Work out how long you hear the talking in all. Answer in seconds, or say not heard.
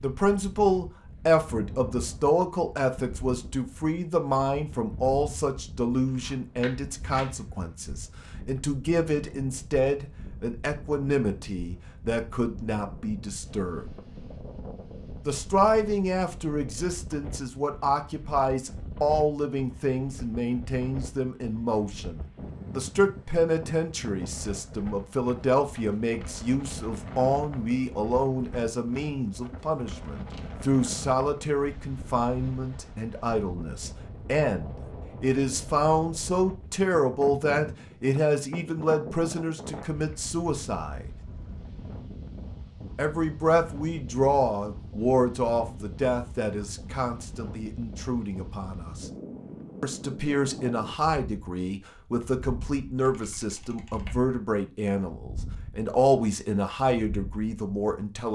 54 s.